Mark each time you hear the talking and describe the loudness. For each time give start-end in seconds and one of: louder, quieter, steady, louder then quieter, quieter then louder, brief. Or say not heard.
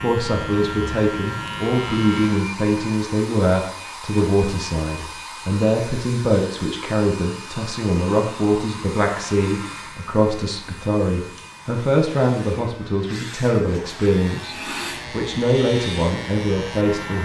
0.0-17.1 steady.